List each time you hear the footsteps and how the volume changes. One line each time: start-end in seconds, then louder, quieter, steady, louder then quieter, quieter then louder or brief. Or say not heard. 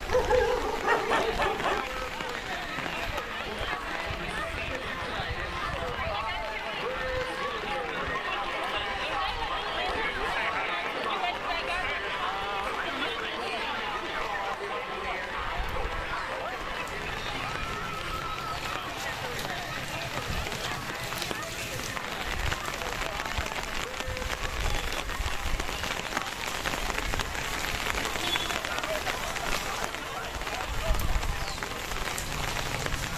not heard.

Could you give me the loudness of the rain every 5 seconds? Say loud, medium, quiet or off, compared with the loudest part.
medium, medium, medium, medium, loud, loud, loud.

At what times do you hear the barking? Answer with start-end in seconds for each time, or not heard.
0.1-1.9, 28.6-31.1.